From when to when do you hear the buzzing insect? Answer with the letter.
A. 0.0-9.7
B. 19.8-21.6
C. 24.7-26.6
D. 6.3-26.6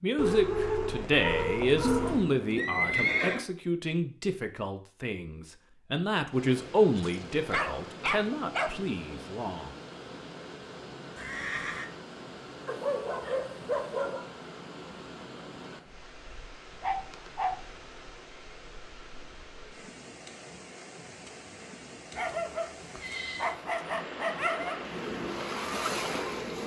C.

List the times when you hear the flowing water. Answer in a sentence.
The flowing water can be heard from 6.3 to 26.6 s.